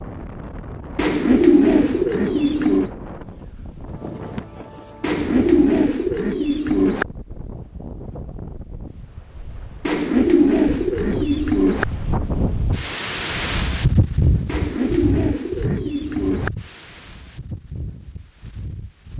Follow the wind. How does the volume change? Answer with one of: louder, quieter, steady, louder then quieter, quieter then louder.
louder then quieter.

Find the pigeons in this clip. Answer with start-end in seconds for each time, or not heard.
0.9-2.9, 5.0-7.0, 9.8-11.8, 14.4-16.5.